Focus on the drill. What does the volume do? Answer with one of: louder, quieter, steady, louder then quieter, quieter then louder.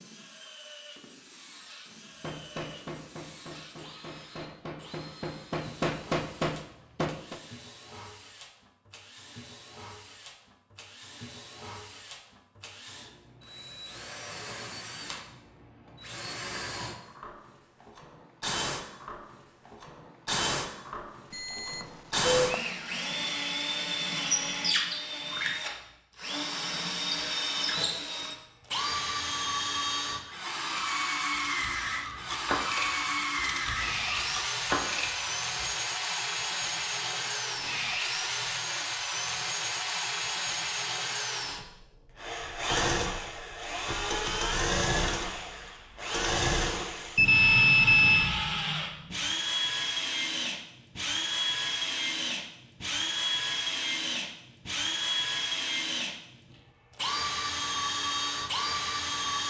louder.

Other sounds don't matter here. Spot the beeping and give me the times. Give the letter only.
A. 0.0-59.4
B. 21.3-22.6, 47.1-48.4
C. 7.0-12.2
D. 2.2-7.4
B.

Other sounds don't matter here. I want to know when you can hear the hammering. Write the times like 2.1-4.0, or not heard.
2.2-7.4.